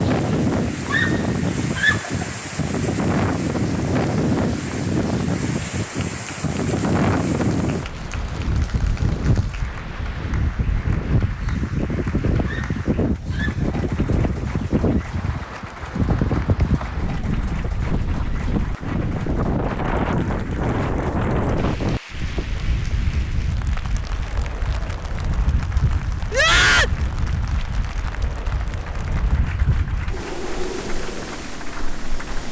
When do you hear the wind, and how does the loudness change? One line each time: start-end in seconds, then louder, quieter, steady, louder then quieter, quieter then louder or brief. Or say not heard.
0.0-32.4 quieter.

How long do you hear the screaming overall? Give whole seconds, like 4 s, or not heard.
3 s.